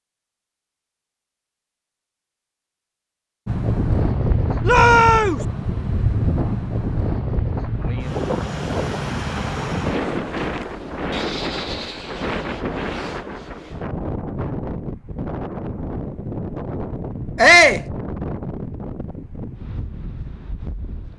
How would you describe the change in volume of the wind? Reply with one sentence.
The loudness of the wind goes down.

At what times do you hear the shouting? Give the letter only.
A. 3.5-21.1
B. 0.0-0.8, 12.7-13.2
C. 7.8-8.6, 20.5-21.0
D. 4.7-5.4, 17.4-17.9
D.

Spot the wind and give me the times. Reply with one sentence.
You can hear the wind from 3.5 to 21.1 s.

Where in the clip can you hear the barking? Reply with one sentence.
You can't hear the barking here.